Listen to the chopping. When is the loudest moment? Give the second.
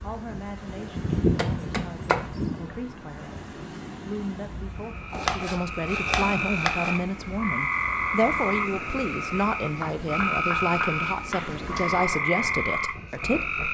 1 s.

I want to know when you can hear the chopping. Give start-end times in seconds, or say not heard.
0.9-2.6, 5.1-7.0, 9.8-11.7.